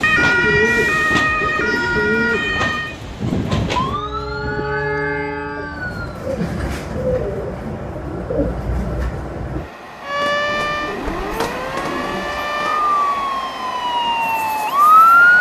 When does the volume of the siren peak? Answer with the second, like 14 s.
15 s.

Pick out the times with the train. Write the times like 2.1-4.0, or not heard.
0.0-15.3.